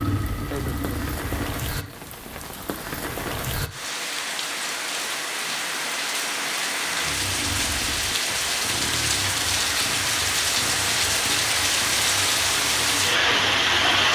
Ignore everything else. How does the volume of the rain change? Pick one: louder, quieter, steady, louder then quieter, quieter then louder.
louder.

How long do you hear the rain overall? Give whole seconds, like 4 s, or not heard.
14 s.